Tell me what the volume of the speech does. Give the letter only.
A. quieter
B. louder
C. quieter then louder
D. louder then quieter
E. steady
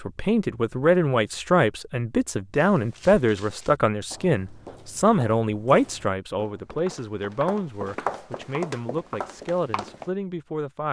A.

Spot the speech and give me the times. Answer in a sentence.
You can hear the speech from 0.0 to 10.8 s.